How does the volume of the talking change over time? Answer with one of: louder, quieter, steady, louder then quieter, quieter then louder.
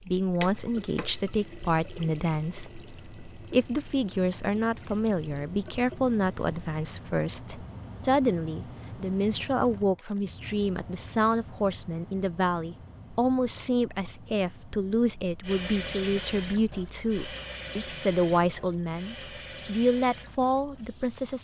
steady.